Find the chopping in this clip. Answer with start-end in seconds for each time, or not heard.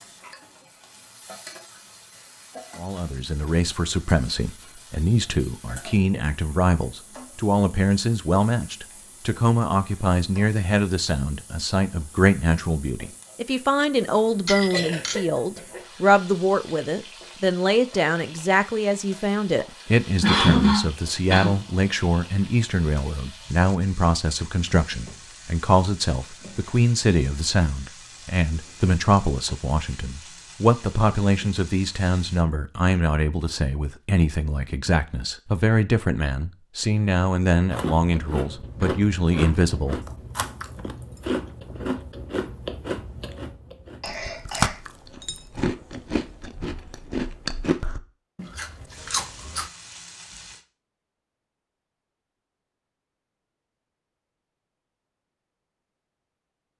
not heard.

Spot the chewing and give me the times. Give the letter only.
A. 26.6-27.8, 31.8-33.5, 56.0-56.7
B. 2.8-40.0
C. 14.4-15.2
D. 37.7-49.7
D.